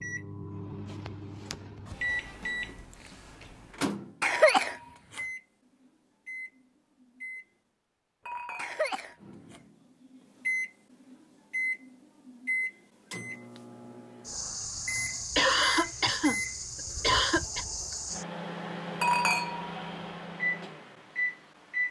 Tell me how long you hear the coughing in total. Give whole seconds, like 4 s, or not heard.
5 s.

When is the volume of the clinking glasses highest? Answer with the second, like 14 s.
19 s.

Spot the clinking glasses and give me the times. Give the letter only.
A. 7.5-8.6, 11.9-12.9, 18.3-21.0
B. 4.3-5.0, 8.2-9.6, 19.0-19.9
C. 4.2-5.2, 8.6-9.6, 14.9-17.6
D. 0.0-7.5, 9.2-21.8
B.